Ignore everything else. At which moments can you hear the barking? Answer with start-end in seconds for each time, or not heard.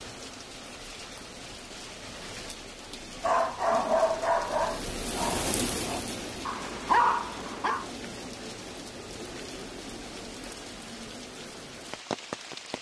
3.2-7.8.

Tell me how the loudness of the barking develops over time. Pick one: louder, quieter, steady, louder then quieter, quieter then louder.
quieter then louder.